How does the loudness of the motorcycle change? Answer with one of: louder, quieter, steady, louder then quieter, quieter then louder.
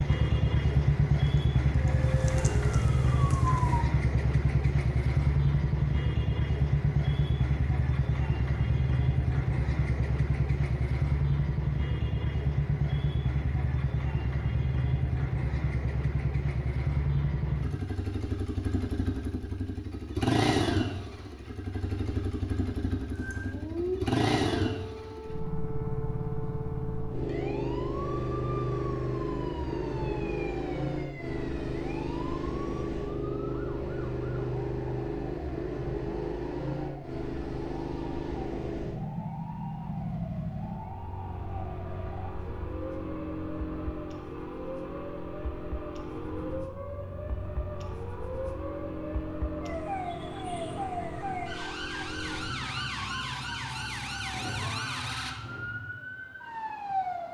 quieter.